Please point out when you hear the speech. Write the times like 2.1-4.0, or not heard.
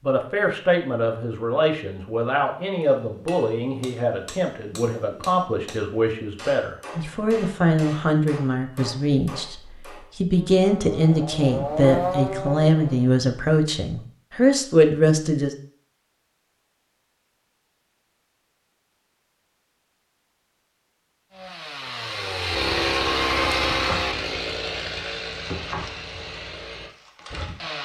0.0-15.6.